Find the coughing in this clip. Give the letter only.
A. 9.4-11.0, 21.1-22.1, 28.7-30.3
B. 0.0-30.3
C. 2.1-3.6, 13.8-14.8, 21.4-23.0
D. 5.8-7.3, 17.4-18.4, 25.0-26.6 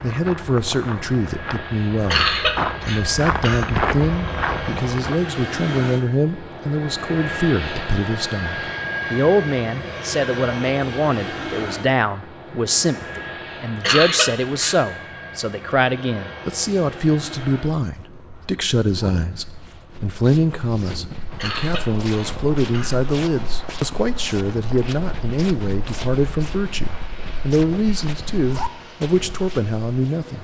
C.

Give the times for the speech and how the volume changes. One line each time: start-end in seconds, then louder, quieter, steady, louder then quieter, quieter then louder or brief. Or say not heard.
0.0-30.3 steady.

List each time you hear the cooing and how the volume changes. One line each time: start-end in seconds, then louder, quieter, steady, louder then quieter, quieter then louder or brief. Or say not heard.
not heard.